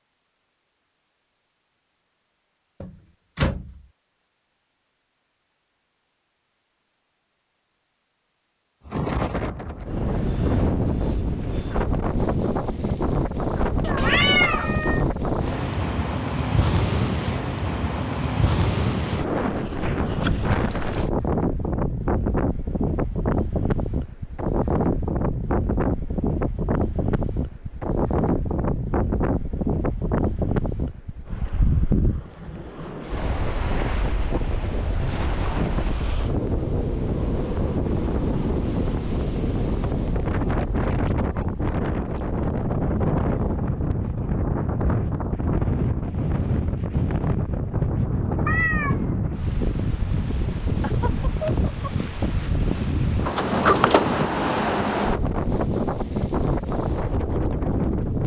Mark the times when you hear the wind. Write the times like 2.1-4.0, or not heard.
8.8-58.2.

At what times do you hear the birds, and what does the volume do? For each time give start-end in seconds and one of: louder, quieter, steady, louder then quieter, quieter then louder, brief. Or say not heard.
not heard.